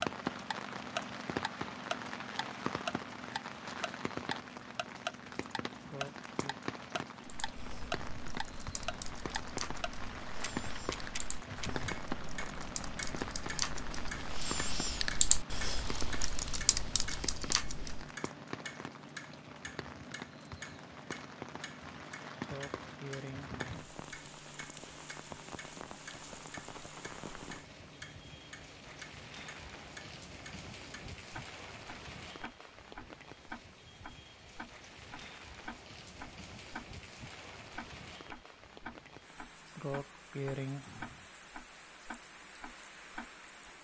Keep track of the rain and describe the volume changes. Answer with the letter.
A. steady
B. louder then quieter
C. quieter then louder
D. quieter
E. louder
D.